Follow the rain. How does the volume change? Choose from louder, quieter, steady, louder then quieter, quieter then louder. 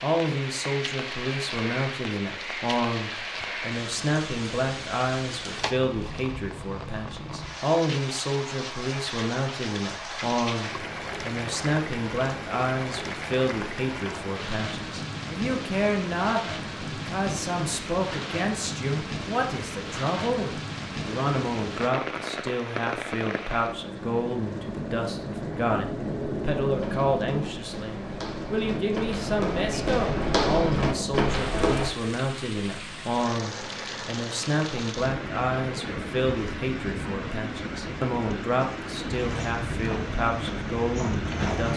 steady.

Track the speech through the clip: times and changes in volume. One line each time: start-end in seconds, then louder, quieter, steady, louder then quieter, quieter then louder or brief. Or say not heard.
0.0-41.7 steady.